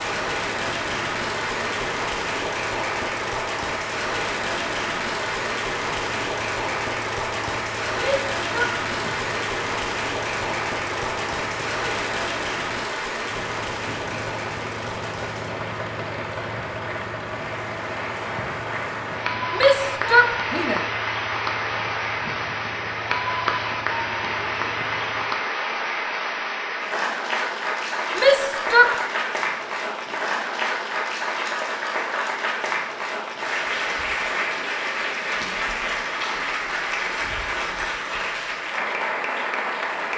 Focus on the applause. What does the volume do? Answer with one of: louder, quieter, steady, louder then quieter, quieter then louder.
steady.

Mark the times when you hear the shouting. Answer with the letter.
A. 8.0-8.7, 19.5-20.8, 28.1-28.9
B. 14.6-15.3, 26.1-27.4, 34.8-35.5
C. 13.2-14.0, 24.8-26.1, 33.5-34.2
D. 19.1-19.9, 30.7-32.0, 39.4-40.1
A.